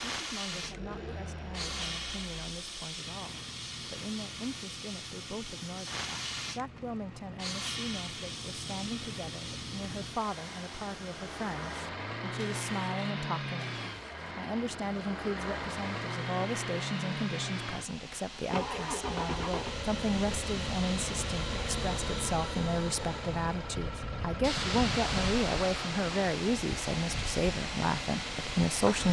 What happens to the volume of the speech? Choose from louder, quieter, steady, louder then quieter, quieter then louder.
louder.